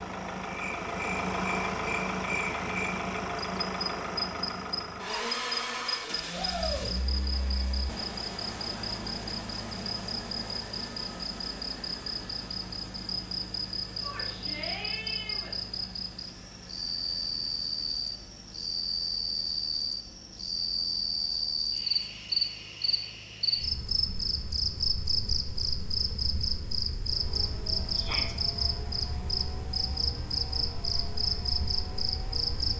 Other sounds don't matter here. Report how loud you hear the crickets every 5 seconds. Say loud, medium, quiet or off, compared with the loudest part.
medium, medium, medium, loud, loud, loud, loud.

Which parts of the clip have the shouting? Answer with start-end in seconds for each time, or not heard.
6.3-6.9, 14.0-15.6, 27.9-28.4.